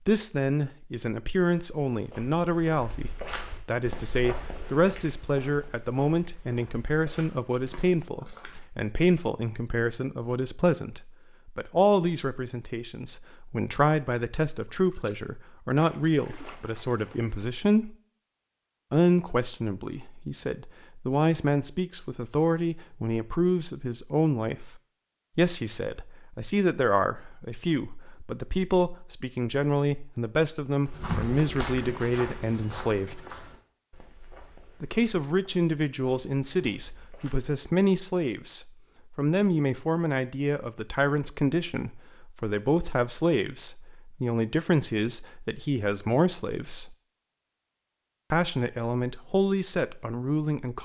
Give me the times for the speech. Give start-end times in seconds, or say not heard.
0.1-17.9, 18.9-24.8, 25.4-33.2, 34.8-47.0, 48.3-50.8.